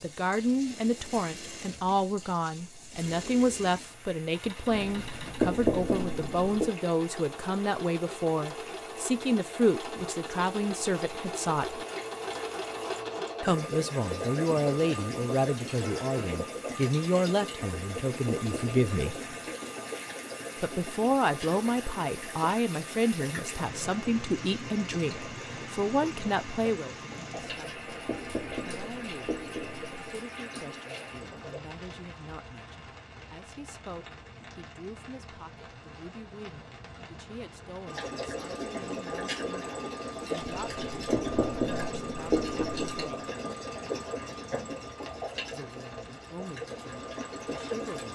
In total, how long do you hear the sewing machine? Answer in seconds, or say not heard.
42 s.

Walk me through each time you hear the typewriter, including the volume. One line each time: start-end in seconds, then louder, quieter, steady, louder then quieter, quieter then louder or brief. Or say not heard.
not heard.